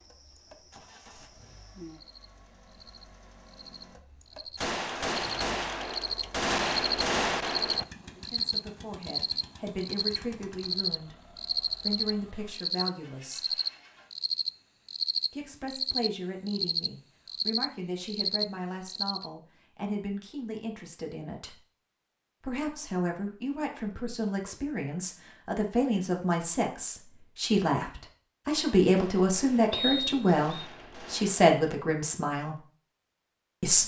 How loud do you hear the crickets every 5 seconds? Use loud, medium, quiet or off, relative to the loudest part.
quiet, loud, loud, loud, off, off, off.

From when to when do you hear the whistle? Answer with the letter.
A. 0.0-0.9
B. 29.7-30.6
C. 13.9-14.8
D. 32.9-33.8
B.